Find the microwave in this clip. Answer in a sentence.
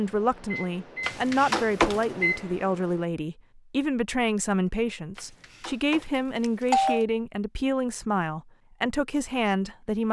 The microwave can be heard from 0.0 to 3.0 s.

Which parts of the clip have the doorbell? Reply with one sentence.
You can hear the doorbell from 1.1 to 2.0 s and from 5.2 to 7.0 s.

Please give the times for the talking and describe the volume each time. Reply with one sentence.
You can hear the talking from 0.0 to 10.0 s, at a steady volume.